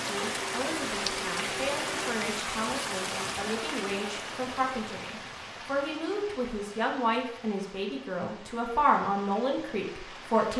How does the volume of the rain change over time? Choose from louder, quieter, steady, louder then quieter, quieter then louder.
quieter.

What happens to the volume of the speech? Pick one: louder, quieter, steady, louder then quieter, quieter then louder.
louder.